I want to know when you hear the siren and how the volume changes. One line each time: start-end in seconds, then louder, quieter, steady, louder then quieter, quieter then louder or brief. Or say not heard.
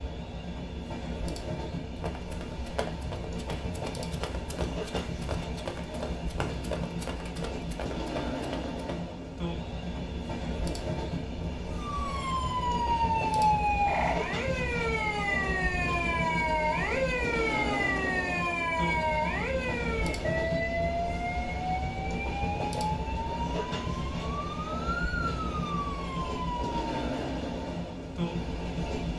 11.7-26.9 quieter.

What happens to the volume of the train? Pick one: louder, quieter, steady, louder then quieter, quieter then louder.
steady.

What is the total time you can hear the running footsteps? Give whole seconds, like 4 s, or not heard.
7 s.